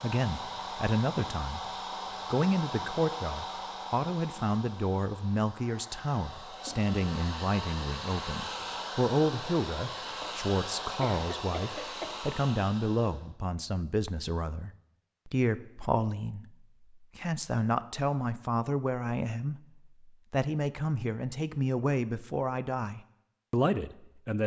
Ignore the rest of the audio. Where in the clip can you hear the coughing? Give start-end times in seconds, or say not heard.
10.2-12.2.